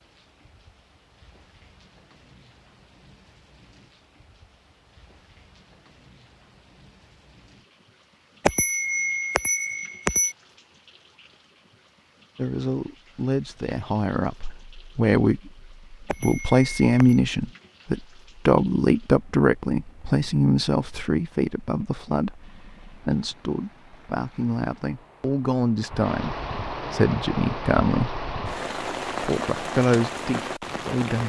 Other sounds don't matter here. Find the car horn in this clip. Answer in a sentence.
The car horn can't be heard in this clip.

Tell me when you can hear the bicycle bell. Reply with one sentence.
You can hear the bicycle bell from 8.4 to 10.3 s and from 16.1 to 17.2 s.